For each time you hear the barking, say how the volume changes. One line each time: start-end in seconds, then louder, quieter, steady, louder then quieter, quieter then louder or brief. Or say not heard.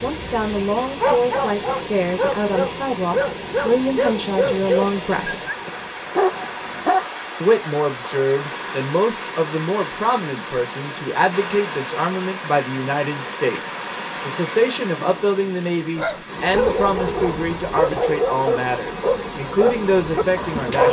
0.0-7.1 steady
15.9-20.8 steady.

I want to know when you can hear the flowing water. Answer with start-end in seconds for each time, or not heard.
0.0-20.8.